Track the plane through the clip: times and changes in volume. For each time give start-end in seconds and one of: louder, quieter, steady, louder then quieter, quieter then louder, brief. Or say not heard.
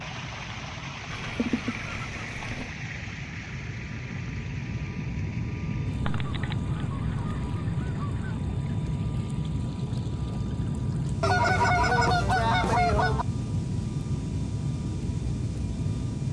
0.0-16.2 louder.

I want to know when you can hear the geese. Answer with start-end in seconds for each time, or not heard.
1.1-2.7, 6.0-8.3, 11.2-13.2.